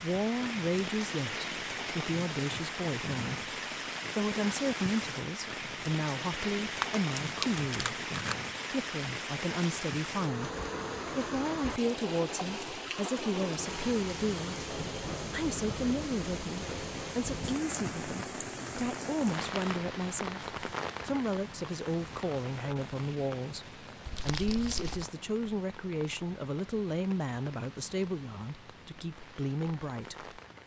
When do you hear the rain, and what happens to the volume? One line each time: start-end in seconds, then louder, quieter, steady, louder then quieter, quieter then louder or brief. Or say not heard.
0.0-30.6 quieter.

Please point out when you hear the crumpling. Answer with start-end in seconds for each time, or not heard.
6.8-8.3, 24.1-25.1.